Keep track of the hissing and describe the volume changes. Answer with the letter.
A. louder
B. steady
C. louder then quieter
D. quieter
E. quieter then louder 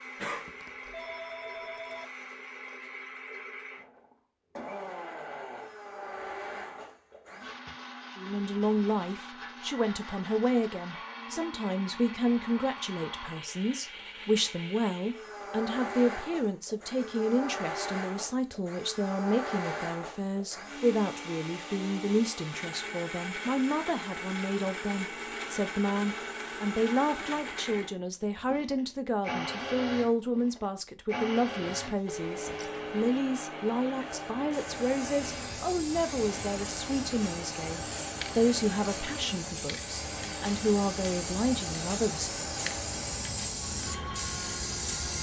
A.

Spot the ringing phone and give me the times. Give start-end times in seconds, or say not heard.
0.2-2.0, 31.9-33.0.